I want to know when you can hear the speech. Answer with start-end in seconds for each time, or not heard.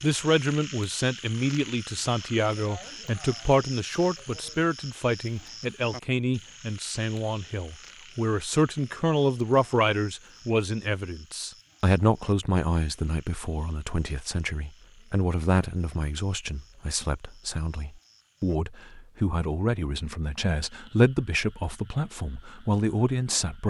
0.0-23.6.